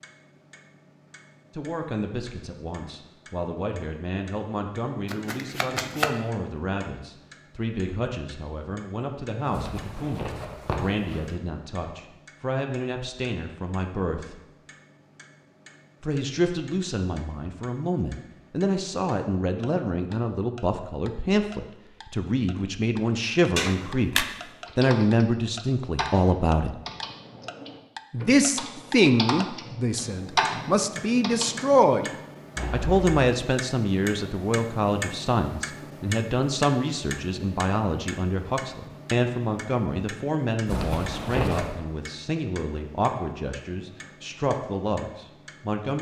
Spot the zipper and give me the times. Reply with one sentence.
The zipper can be heard from 9.5 to 11.3 s and from 40.6 to 41.8 s.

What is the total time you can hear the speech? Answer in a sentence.
The speech can be heard for 41 seconds in total.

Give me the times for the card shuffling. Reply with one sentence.
You can hear the card shuffling from 5.0 to 6.2 s and from 23.6 to 24.2 s.